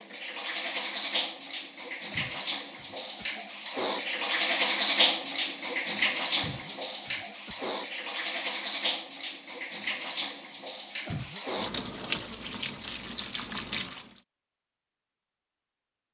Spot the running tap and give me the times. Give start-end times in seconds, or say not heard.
0.0-14.2.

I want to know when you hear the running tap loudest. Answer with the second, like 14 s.
5 s.